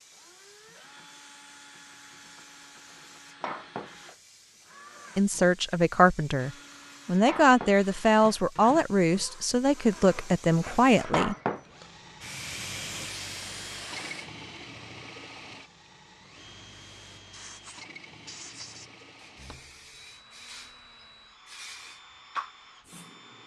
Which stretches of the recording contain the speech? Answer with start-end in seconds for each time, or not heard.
5.2-11.3.